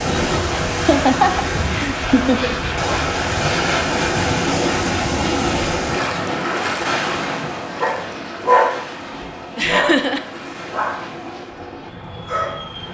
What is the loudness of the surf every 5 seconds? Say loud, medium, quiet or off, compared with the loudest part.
loud, loud, quiet.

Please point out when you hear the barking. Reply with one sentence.
You can hear the barking from 7.8 to 12.8 s.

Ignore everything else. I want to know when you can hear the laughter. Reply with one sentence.
You can hear the laughter from 0.8 to 2.5 s and from 9.6 to 10.2 s.